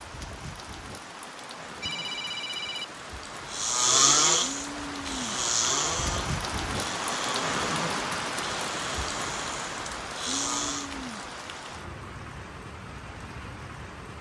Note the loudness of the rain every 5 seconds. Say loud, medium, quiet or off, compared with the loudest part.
medium, loud, medium.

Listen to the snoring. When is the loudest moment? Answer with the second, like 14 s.
4 s.